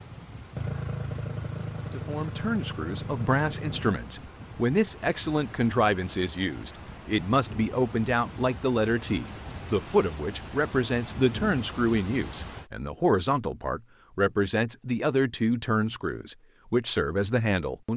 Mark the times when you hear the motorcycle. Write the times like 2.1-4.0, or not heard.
0.0-4.0.